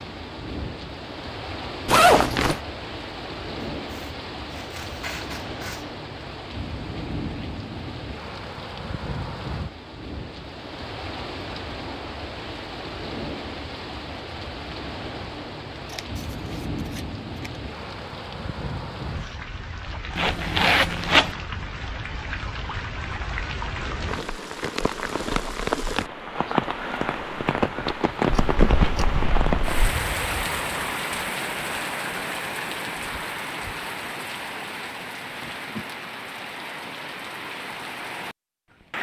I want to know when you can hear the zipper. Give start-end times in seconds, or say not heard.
1.9-2.6, 20.1-21.4.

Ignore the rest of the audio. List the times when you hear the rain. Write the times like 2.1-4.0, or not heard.
0.0-38.9.